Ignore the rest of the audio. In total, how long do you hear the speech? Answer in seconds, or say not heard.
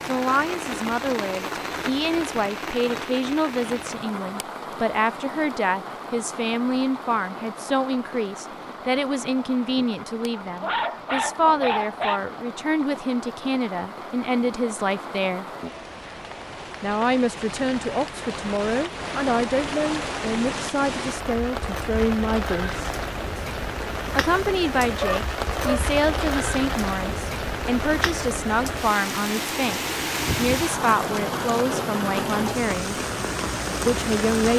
31 s.